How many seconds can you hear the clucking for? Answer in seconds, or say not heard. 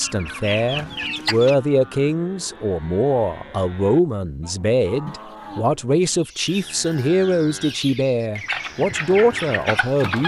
7 s.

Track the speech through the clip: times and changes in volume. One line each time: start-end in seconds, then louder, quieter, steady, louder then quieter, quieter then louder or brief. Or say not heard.
0.0-10.2 steady.